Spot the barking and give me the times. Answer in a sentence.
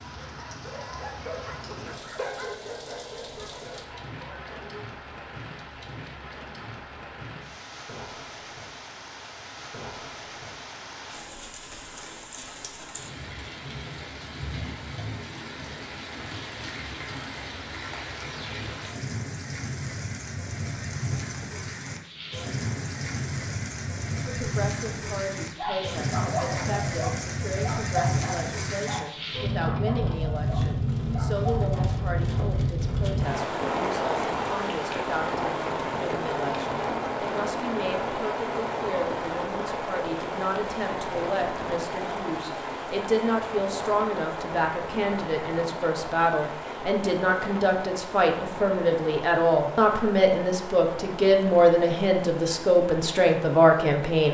You can hear the barking from 0.1 to 4.8 s and from 25.6 to 32.0 s.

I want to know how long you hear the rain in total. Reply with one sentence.
You can hear the rain for 54 seconds altogether.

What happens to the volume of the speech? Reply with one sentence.
The volume of the speech goes up.